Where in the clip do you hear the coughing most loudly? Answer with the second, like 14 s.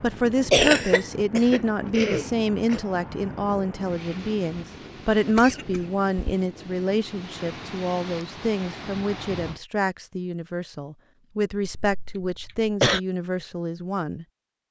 1 s.